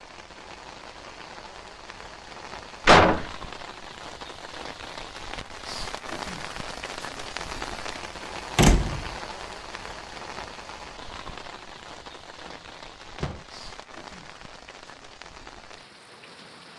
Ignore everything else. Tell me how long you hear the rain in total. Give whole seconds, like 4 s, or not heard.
17 s.